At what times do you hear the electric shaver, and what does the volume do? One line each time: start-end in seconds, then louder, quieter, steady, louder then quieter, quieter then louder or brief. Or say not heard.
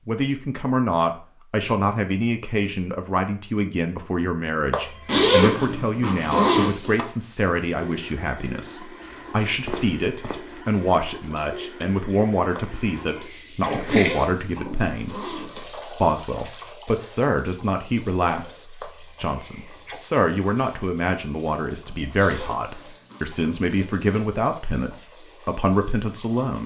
not heard.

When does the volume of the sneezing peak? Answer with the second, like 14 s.
14 s.